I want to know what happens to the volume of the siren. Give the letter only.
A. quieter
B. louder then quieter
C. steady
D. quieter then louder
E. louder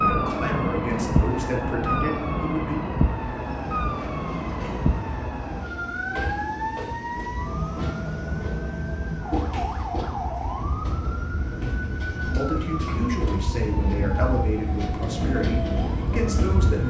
A.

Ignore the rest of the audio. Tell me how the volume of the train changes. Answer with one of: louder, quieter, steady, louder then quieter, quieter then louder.
louder.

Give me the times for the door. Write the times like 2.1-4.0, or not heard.
not heard.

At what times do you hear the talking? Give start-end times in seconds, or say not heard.
0.0-2.8, 12.2-16.8.